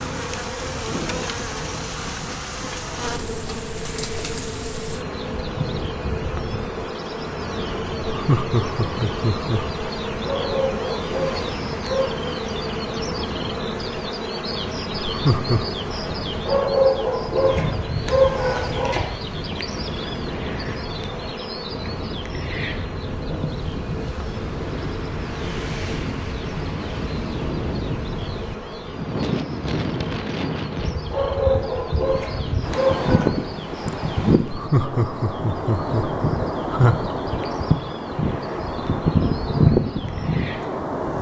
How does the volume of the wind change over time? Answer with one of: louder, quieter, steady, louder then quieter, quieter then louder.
louder.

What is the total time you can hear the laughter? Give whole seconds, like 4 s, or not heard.
5 s.